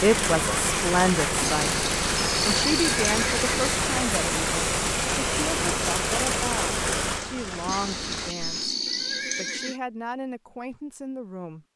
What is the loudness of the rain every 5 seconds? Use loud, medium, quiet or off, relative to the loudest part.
loud, loud, off.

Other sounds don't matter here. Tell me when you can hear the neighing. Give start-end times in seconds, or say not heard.
1.4-3.8, 7.7-9.8.